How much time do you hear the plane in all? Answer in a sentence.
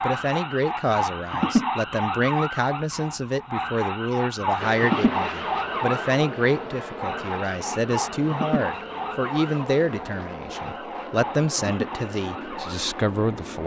You can hear the plane for 9 seconds altogether.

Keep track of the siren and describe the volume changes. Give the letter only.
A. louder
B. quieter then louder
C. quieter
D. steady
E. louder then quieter
C.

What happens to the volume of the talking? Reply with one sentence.
The volume of the talking stays about the same.